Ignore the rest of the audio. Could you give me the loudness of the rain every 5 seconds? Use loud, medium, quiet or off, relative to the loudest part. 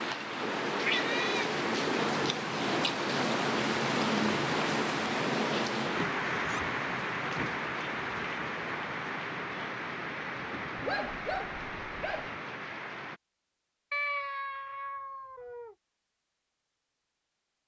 loud, loud, medium, off.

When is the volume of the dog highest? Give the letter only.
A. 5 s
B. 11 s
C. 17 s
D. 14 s
B.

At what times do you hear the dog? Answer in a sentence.
You can hear the dog from 10.8 to 12.3 s.